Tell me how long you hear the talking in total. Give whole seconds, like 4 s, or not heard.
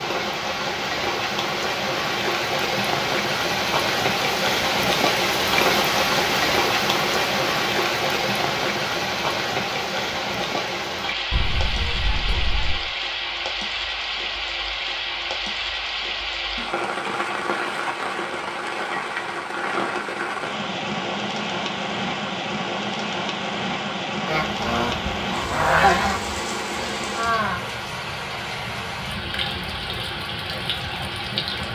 not heard.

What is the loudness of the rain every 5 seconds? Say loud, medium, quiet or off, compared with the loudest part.
loud, loud, medium, medium, medium, medium, medium.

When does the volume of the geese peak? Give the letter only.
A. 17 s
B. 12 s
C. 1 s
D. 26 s
D.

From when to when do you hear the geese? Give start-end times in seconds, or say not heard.
11.3-12.9, 24.2-26.2.